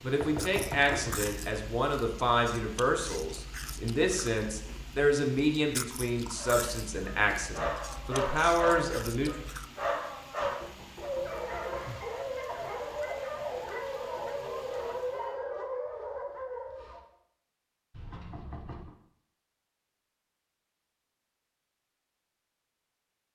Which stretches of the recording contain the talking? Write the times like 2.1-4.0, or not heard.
0.0-9.3.